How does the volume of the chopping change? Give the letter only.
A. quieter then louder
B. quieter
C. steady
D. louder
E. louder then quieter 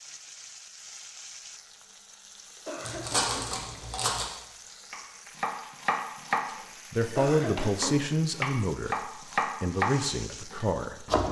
A.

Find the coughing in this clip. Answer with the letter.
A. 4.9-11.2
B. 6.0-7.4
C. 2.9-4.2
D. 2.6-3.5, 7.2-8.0
D.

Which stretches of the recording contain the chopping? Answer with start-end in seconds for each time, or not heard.
4.9-11.2.